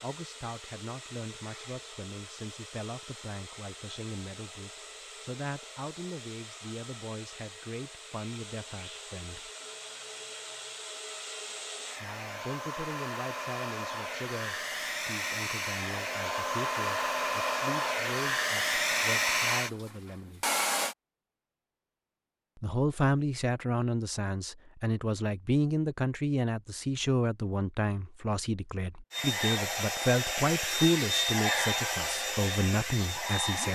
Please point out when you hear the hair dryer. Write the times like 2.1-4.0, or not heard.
0.0-20.9, 29.1-33.6.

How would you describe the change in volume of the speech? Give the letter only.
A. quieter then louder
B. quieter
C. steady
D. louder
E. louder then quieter
D.